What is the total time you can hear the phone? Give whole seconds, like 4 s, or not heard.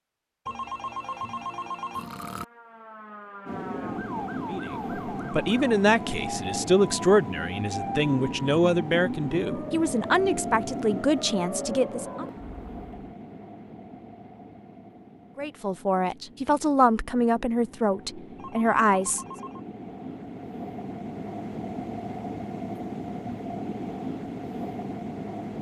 3 s.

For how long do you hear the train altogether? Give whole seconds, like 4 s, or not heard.
22 s.